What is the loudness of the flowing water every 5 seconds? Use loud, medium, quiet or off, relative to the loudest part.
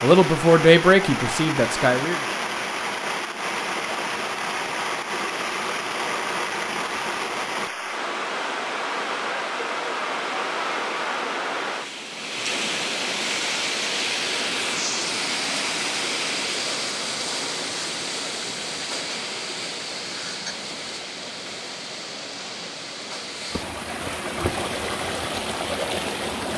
loud, loud, loud, loud, medium, loud.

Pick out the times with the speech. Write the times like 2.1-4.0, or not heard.
0.0-2.2.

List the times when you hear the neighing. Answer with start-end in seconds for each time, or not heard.
not heard.